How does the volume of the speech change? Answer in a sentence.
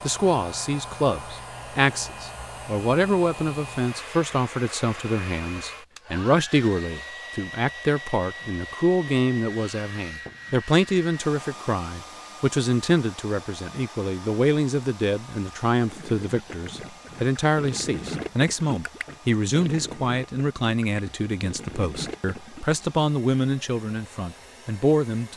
The loudness of the speech stays about the same.